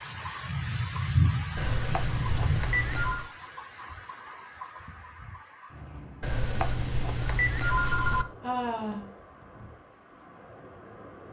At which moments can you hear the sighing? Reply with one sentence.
You can hear the sighing from 8.4 to 9.1 s.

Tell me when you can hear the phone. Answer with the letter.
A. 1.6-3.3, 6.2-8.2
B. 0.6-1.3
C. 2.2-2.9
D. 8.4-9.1
A.